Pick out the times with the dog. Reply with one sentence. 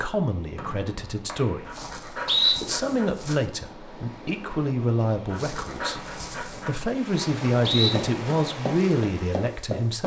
The dog can be heard from 1.6 to 3.5 s and from 5.2 to 6.8 s.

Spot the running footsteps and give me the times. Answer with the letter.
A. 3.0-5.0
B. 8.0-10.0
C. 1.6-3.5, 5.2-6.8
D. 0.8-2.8
B.